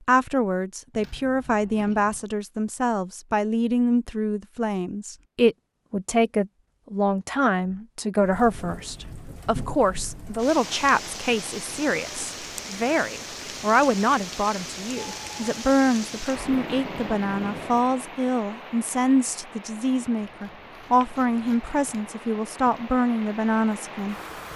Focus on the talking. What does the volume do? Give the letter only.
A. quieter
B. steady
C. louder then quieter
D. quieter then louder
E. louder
B.